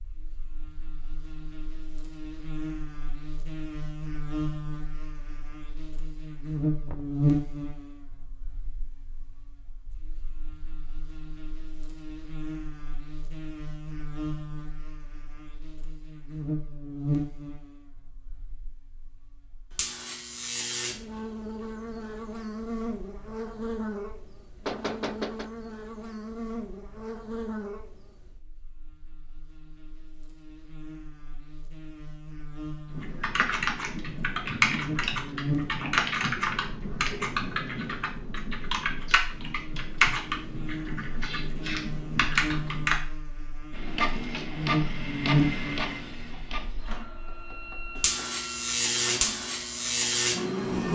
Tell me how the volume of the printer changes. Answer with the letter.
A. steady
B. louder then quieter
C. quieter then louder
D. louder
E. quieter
E.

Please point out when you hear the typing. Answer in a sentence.
You can hear the typing from 32.9 to 43.0 s.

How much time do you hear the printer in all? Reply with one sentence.
You can hear the printer for 7 seconds altogether.